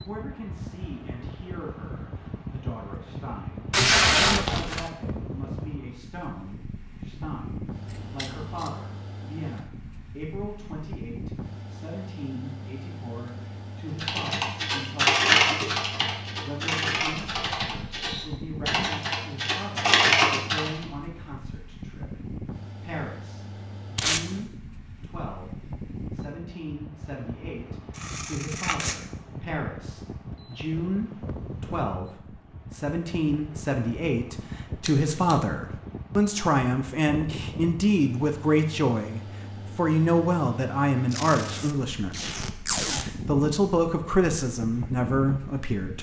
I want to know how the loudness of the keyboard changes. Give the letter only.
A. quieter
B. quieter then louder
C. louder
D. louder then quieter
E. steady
B.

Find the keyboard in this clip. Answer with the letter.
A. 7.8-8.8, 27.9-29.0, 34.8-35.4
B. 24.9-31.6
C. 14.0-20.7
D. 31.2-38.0
C.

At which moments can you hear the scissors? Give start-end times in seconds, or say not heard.
7.8-8.8, 27.9-29.0, 34.8-35.4.